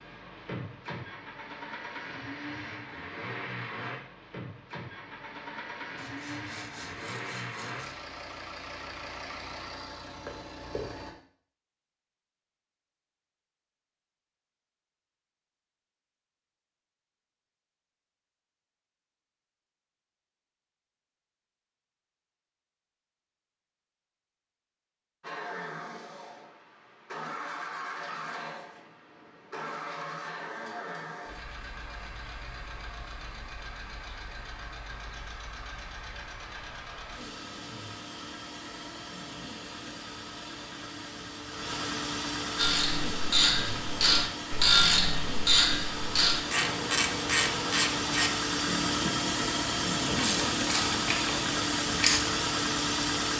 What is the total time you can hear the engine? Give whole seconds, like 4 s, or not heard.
39 s.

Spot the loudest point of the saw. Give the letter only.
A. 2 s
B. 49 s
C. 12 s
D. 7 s
D.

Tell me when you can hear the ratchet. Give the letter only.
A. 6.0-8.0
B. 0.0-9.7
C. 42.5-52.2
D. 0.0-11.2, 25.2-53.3
C.